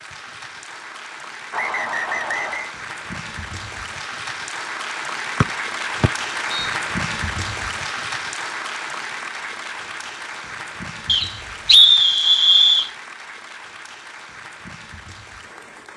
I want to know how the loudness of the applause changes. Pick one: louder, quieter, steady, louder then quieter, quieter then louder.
louder then quieter.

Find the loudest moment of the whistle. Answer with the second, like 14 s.
12 s.